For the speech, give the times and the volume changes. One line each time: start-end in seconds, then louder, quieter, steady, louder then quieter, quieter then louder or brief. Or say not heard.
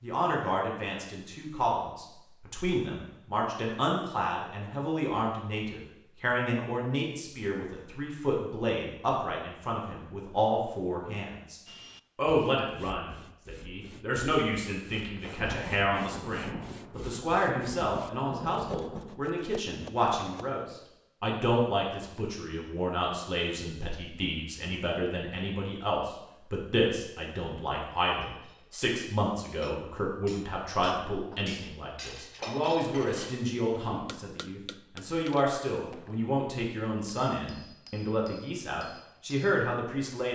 0.0-40.3 steady.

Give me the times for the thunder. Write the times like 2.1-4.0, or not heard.
14.9-19.1.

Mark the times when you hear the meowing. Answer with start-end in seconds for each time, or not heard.
not heard.